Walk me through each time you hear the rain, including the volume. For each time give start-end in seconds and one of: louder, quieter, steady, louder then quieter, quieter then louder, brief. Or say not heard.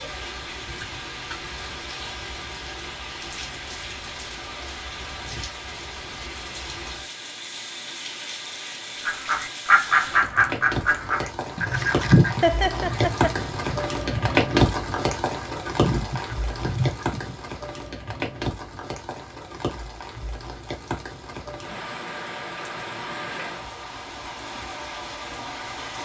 0.0-26.0 louder then quieter.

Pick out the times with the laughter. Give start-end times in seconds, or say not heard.
12.4-13.3.